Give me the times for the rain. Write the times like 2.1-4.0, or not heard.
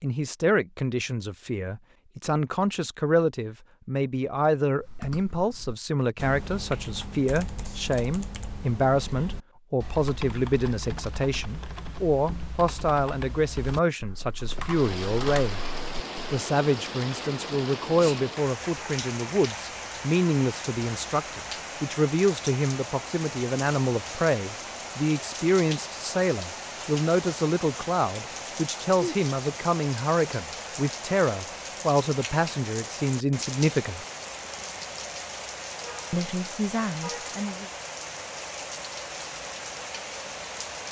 14.4-40.8.